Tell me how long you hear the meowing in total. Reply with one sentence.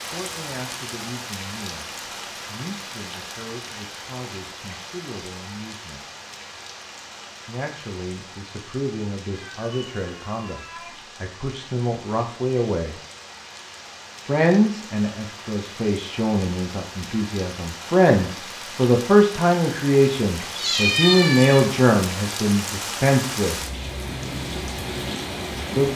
You can hear the meowing for 3 seconds altogether.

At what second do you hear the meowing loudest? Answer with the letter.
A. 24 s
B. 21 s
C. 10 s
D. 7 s
B.